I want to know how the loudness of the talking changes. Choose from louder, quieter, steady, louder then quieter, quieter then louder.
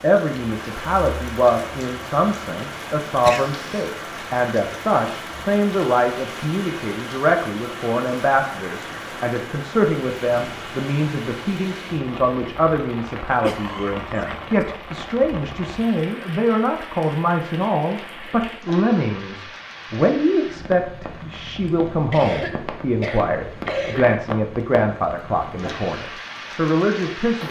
steady.